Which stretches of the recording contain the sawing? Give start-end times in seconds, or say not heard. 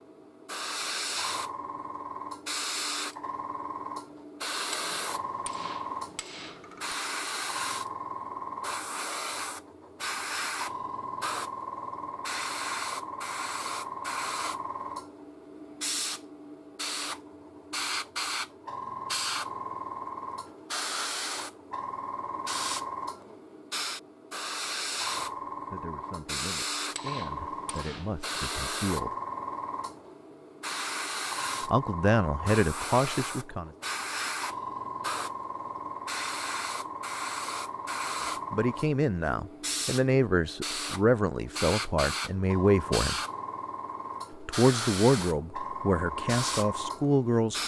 not heard.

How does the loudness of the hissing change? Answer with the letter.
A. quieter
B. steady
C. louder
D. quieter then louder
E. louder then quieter
B.